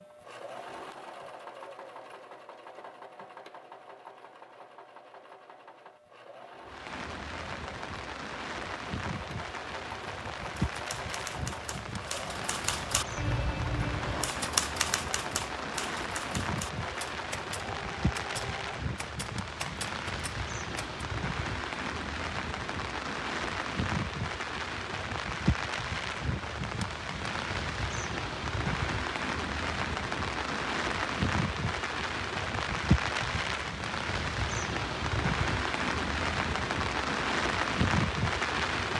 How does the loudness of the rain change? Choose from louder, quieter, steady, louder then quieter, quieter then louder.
louder.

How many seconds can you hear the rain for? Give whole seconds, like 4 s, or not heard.
32 s.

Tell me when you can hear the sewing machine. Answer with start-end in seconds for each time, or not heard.
0.0-18.8.